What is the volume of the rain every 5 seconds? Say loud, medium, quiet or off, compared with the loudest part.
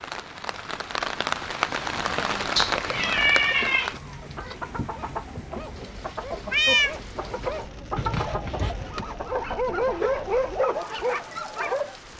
loud, quiet, quiet.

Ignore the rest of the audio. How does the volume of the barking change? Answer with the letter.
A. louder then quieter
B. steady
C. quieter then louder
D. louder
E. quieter
D.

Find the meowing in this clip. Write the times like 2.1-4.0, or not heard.
2.5-4.5, 6.5-7.0.